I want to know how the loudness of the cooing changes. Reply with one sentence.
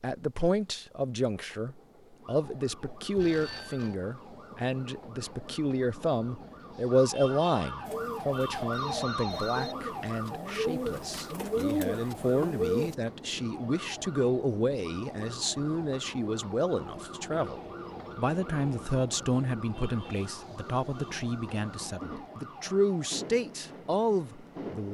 The volume of the cooing goes up.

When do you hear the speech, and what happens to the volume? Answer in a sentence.
You can hear the speech from 0.0 to 24.8 s, at a steady volume.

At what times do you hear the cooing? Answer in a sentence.
You can hear the cooing from 7.8 to 12.9 s.